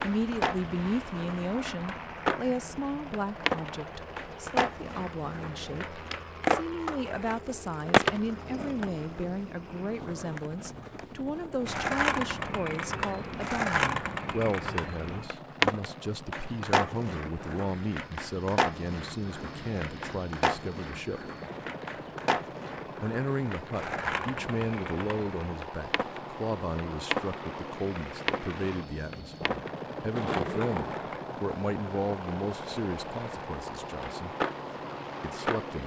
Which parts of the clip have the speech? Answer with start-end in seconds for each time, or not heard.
0.0-21.3, 23.0-34.4, 35.2-35.8.